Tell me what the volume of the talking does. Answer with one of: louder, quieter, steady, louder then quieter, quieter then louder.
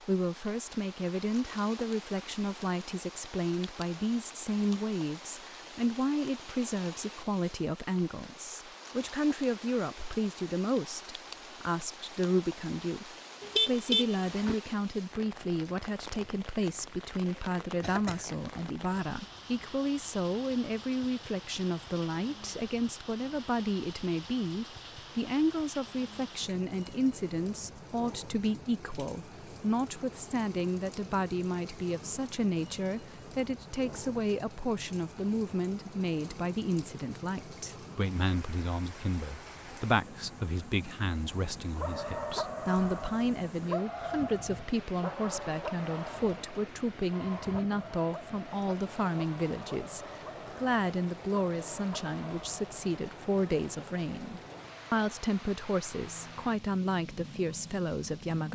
steady.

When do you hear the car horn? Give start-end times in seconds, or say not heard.
13.4-14.6.